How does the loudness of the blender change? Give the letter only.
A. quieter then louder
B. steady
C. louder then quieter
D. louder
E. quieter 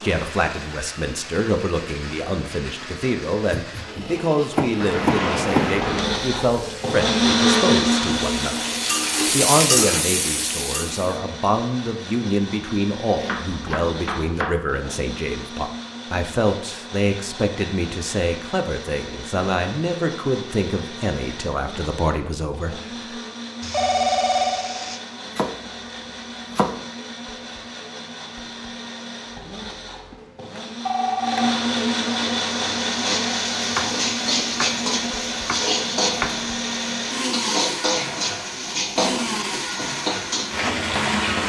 A.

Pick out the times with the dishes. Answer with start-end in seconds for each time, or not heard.
not heard.